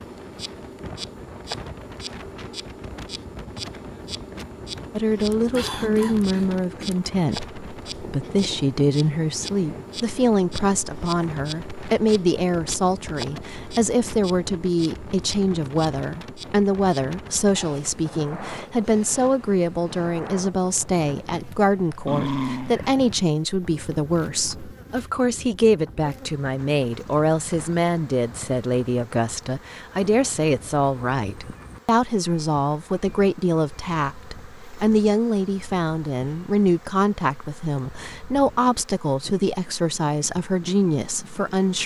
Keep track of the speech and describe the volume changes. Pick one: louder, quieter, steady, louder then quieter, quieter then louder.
steady.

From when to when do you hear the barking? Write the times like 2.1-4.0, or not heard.
22.1-22.9.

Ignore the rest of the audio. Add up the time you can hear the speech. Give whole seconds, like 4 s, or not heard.
37 s.